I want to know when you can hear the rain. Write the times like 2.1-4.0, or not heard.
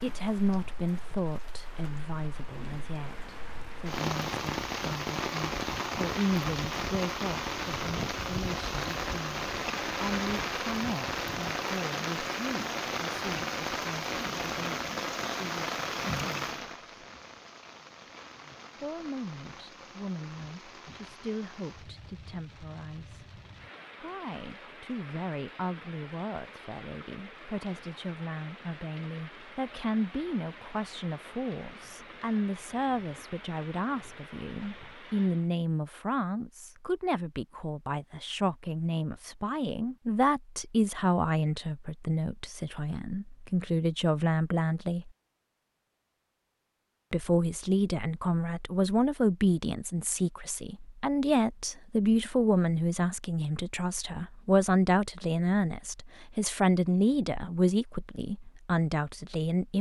0.0-35.5.